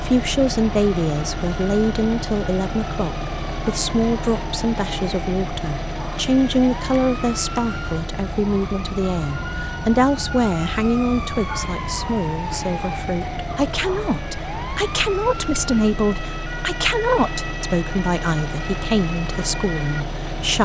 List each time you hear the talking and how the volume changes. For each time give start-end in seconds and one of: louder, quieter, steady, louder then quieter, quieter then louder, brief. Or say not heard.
0.0-20.5 steady.